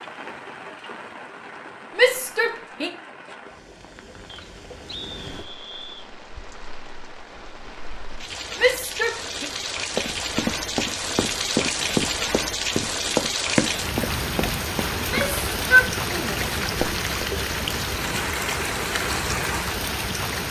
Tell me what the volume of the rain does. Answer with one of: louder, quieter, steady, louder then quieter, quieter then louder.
louder.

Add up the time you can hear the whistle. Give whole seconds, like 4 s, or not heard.
2 s.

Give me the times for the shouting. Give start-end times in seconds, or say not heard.
1.9-2.9, 8.6-9.4, 14.9-16.4.